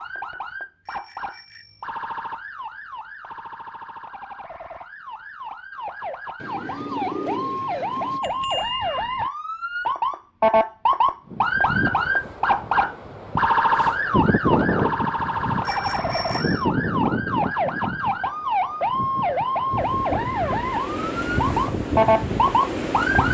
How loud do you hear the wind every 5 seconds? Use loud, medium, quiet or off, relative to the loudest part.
off, off, loud, loud, loud.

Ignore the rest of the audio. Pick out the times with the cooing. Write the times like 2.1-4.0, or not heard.
6.4-8.2.